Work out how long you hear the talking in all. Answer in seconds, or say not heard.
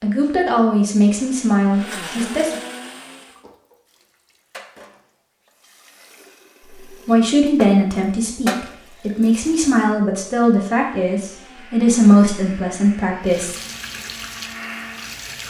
9 s.